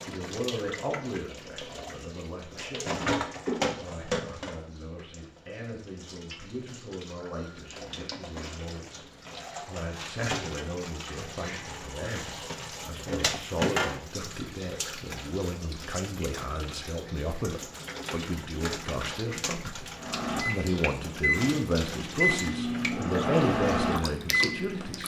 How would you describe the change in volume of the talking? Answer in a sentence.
The volume of the talking goes up.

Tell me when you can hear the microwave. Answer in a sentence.
You can hear the microwave from 20.0 to 25.0 s.